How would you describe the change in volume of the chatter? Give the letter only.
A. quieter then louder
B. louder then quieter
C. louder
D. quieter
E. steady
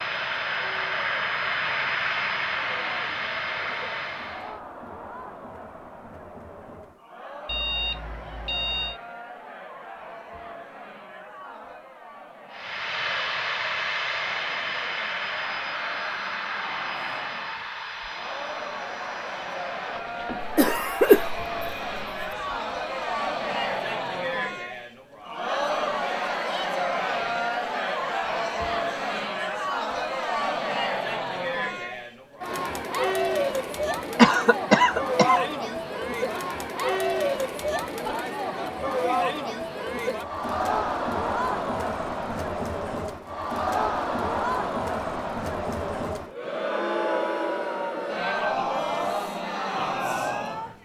C.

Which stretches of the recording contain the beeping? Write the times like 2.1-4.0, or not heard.
7.5-9.0.